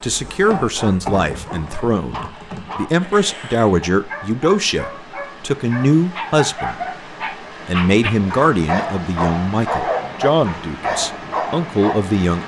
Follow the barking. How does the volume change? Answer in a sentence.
The loudness of the barking goes up.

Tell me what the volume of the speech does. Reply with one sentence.
The loudness of the speech stays about the same.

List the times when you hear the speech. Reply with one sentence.
You can hear the speech from 0.0 to 6.8 s and from 7.7 to 12.4 s.